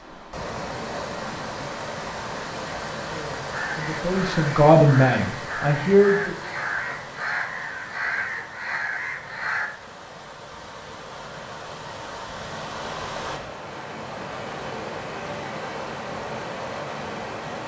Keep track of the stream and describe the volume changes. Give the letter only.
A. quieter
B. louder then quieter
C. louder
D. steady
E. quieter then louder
E.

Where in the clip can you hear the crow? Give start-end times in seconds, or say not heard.
3.5-9.7.